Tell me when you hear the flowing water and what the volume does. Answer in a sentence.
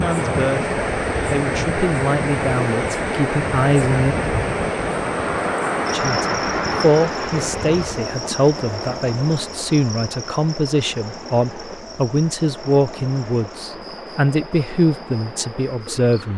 You can hear the flowing water from 0.0 to 16.3 s, getting quieter.